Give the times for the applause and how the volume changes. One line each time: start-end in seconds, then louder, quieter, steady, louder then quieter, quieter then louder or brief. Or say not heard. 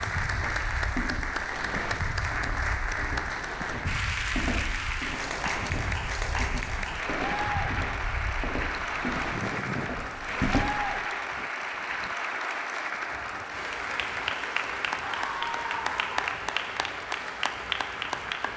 0.0-18.5 steady.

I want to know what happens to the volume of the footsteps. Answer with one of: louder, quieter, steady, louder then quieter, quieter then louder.
louder.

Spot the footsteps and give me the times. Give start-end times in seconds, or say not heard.
0.1-11.0.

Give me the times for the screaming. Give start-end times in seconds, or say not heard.
14.9-16.1.